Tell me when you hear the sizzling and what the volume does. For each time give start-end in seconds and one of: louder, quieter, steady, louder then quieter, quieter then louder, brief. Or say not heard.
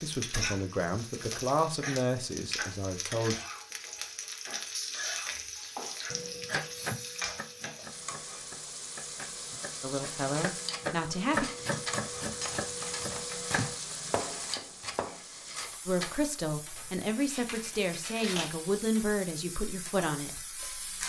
0.0-21.0 quieter.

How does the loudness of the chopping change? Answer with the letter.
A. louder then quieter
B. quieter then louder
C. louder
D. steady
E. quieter
B.